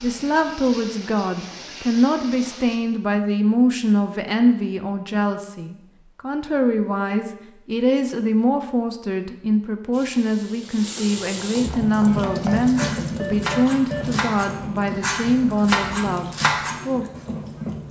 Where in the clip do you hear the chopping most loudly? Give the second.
16 s.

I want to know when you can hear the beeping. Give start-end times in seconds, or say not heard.
12.2-14.1.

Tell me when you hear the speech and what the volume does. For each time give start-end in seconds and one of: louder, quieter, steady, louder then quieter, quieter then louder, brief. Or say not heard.
0.0-17.1 steady.